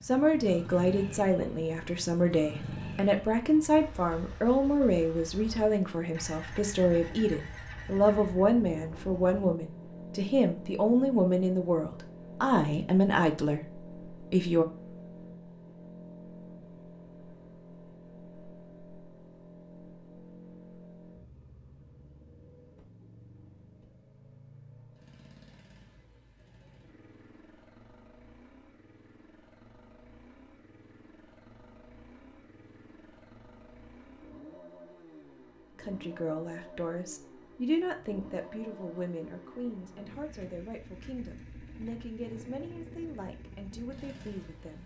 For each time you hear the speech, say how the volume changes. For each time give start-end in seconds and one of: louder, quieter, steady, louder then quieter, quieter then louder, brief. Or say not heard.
0.0-14.7 steady
35.8-44.8 quieter.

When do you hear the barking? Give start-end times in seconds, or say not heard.
not heard.